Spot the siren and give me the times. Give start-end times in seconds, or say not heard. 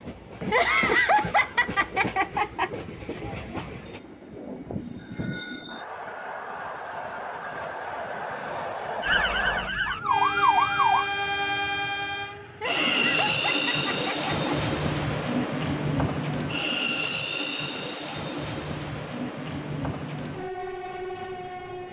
9.0-11.1.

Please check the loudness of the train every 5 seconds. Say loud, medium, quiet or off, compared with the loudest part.
medium, medium, loud, loud, medium.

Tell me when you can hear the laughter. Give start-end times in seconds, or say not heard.
0.5-2.7, 12.6-14.3.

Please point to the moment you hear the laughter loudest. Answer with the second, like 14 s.
1 s.